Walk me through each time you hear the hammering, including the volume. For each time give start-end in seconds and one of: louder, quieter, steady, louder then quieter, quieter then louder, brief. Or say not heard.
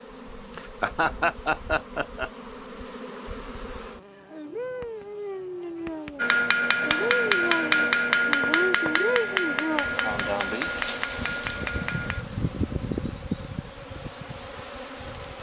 6.2-12.2 quieter.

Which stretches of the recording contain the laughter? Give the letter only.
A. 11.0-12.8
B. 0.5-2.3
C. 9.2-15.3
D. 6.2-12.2
B.